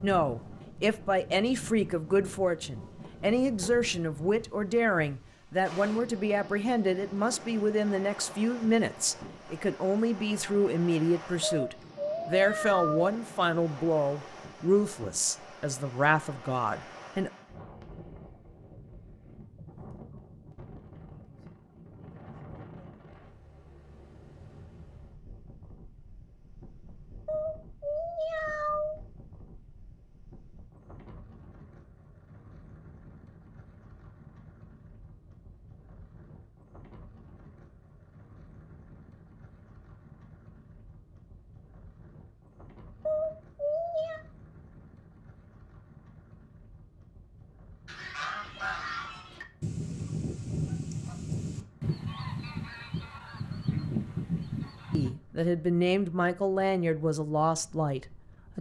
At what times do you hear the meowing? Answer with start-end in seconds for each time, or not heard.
11.4-13.1, 27.2-29.0, 43.0-44.2.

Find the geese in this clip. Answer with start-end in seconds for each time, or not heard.
47.9-55.1.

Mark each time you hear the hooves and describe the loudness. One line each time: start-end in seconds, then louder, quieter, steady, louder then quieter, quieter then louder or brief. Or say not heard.
not heard.